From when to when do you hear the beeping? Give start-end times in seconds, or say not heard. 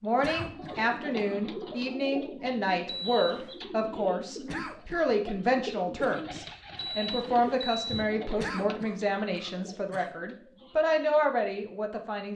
2.9-3.5, 6.8-8.1.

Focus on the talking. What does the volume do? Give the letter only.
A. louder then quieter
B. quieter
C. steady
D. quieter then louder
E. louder
C.